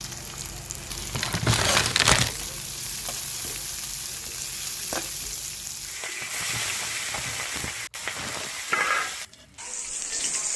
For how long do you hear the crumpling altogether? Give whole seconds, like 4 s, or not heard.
4 s.